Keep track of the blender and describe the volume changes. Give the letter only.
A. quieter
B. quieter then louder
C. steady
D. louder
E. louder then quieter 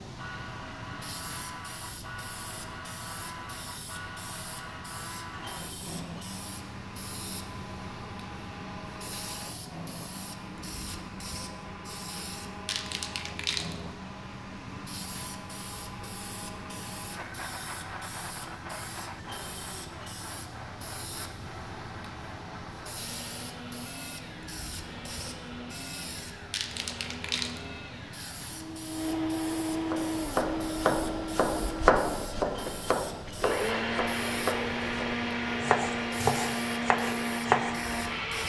D.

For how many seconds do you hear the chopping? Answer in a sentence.
The chopping can be heard for 8 seconds in total.